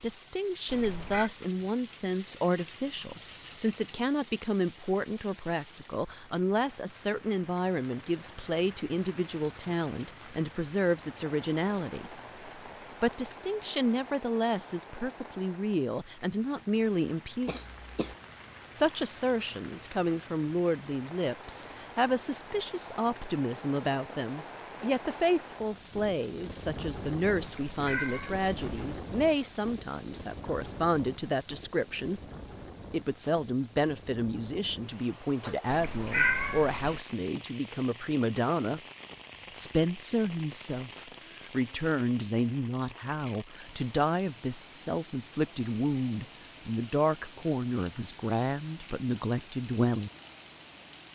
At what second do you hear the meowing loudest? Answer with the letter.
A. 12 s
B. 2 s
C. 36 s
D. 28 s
C.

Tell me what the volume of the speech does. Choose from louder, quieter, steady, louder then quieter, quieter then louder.
steady.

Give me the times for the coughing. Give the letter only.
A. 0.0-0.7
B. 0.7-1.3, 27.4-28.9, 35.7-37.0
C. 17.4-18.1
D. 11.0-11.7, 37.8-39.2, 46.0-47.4
C.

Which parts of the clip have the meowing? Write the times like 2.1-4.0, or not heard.
0.7-1.3, 27.4-28.9, 35.7-37.0.